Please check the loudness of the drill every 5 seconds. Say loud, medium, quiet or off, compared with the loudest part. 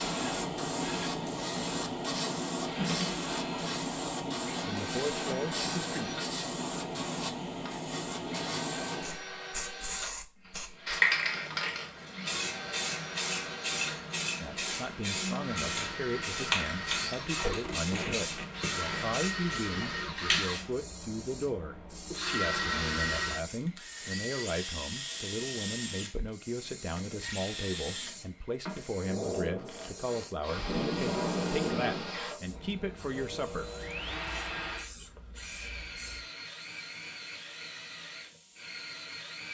loud, medium, medium, loud, loud, loud, loud, medium.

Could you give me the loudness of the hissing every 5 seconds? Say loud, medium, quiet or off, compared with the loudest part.
loud, loud, loud, loud, medium, quiet, quiet, quiet.